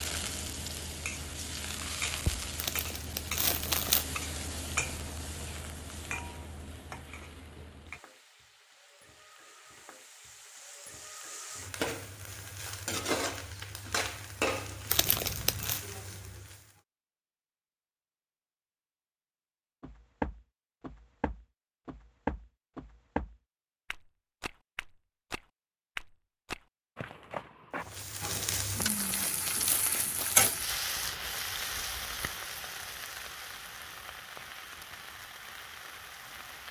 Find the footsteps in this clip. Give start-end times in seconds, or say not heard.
19.8-29.1.